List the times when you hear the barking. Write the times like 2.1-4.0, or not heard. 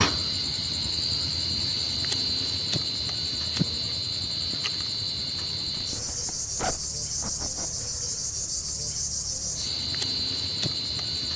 not heard.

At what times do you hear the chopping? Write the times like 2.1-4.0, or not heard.
not heard.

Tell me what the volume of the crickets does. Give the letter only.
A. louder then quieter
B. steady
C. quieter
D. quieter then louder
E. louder
B.